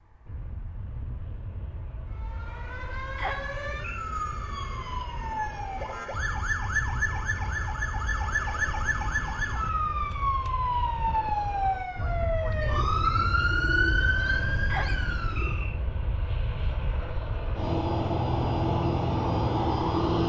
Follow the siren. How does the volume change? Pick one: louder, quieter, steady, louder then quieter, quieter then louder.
louder.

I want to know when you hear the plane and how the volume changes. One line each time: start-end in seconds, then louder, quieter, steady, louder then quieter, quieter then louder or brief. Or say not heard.
0.0-20.2 louder.